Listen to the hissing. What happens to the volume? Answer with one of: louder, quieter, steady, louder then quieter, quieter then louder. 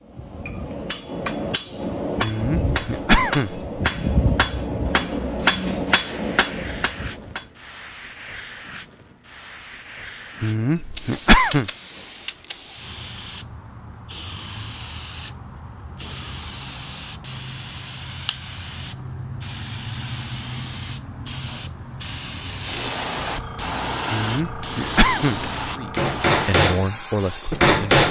louder.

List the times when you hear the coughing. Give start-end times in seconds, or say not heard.
2.2-3.6, 10.4-11.7, 24.1-25.5.